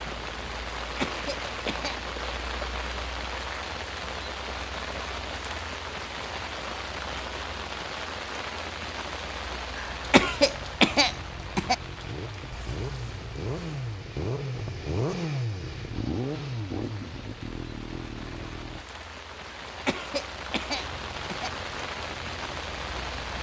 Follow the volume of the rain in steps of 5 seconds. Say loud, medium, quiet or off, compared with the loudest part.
loud, loud, medium, medium, loud.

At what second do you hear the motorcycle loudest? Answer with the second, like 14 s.
15 s.